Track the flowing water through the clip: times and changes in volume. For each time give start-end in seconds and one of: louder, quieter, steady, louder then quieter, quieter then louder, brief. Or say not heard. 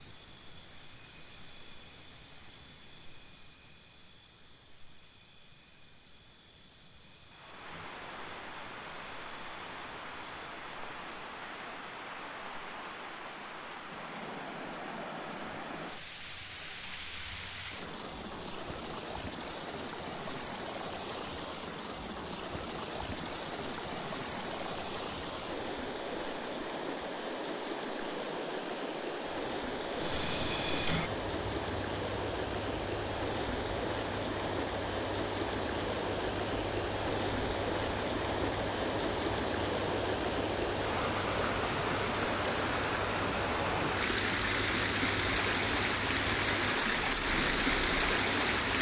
7.2-48.7 louder.